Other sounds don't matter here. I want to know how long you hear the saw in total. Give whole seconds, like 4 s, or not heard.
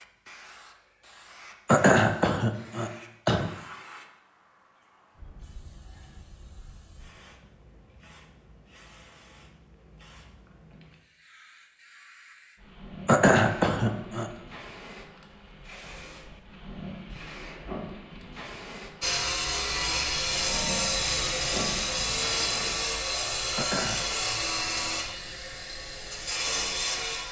8 s.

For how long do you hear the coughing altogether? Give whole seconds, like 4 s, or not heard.
4 s.